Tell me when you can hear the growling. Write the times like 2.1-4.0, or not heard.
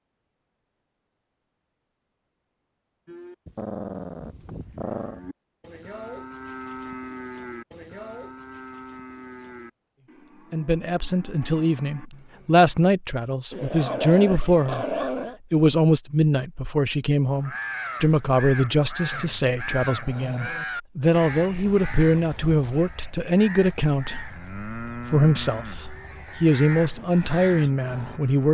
3.5-5.2, 13.5-15.4, 19.1-20.6.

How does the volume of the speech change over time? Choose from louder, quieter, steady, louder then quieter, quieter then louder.
steady.